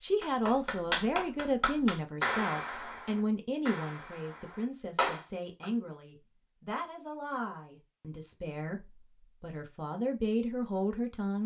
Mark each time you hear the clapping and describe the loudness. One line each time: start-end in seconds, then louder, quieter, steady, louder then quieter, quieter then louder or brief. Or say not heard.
0.2-5.7 quieter then louder.